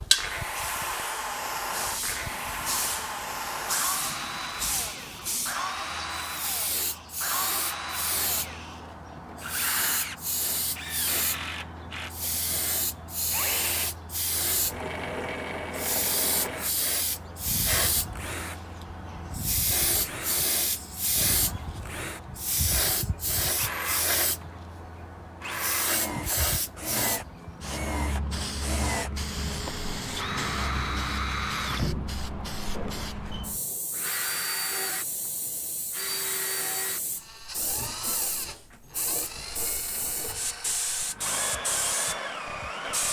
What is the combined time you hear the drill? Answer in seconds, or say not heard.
43 s.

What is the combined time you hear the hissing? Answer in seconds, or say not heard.
43 s.